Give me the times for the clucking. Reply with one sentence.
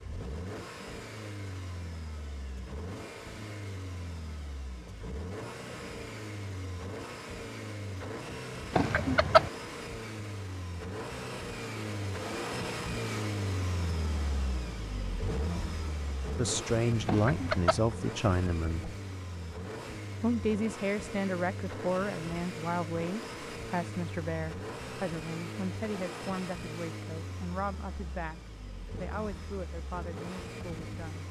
You can hear the clucking from 8.7 to 9.5 s and from 17.1 to 17.9 s.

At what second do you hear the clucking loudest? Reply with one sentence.
The loudest moment of the clucking is at 9 seconds.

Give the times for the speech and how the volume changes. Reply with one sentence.
You can hear the speech briefly from 16.4 to 18.9 s; and from 20.2 to 31.2 s, getting quieter.